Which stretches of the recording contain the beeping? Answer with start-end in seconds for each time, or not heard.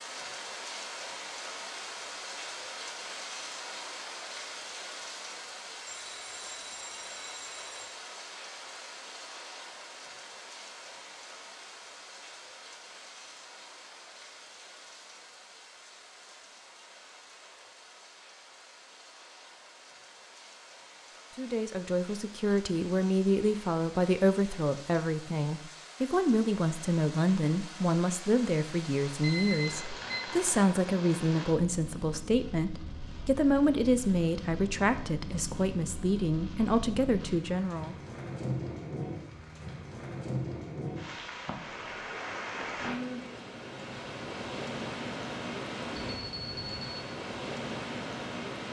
5.8-7.9, 29.2-30.1, 46.0-47.0.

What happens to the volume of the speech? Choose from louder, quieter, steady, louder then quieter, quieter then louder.
steady.